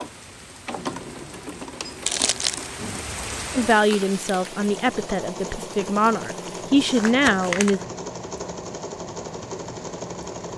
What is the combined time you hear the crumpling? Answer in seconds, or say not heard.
2 s.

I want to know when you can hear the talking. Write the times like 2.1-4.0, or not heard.
3.5-7.8.